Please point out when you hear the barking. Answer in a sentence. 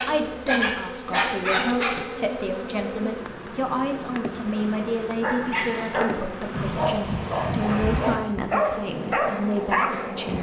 The barking can be heard from 0.0 to 2.0 s and from 5.2 to 10.1 s.